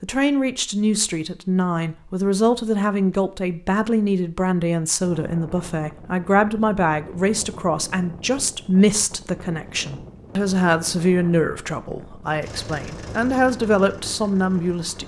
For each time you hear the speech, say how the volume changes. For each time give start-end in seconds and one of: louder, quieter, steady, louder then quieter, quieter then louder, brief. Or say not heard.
0.0-15.0 steady.